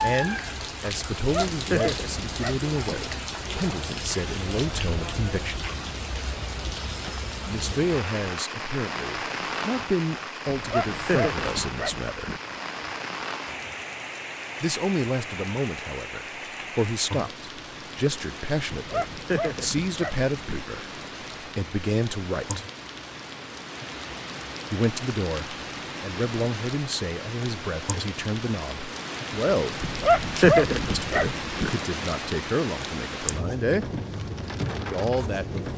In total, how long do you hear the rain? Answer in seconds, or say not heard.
36 s.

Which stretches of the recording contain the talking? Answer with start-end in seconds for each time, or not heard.
0.0-5.7, 7.5-12.3, 14.6-22.6, 24.7-33.9, 34.9-35.7.